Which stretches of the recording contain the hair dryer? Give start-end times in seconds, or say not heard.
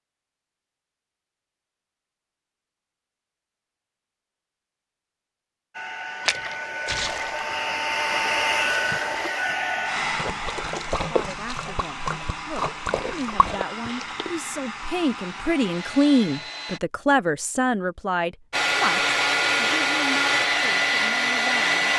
5.7-16.8, 18.5-21.9.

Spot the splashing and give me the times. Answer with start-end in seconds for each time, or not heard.
6.2-14.3.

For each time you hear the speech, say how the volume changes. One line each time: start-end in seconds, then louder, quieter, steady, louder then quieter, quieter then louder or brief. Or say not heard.
11.0-21.9 louder then quieter.